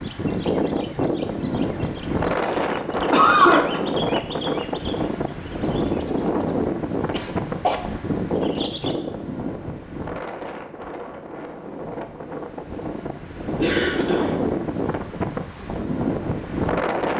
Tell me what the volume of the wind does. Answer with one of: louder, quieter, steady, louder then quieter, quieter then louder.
quieter then louder.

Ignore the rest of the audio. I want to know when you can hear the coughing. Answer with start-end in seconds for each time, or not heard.
2.4-3.8, 7.1-7.8, 13.6-14.3.